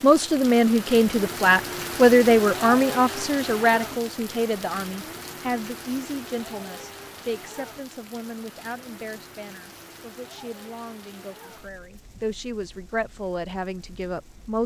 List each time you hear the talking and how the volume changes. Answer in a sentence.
You can hear the talking from 0.0 to 14.6 s, getting quieter then louder.